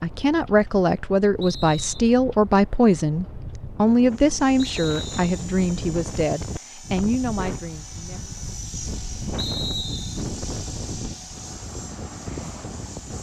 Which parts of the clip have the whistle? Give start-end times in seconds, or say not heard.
1.4-2.0, 4.6-5.5, 9.3-10.2.